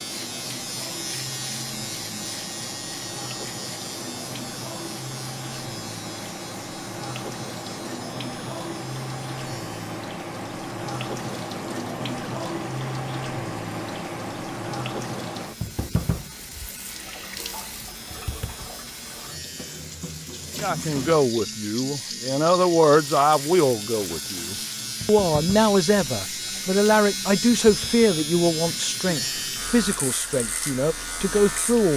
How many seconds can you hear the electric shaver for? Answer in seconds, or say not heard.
32 s.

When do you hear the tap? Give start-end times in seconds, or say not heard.
0.0-31.9.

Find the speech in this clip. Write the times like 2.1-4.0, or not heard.
20.6-31.9.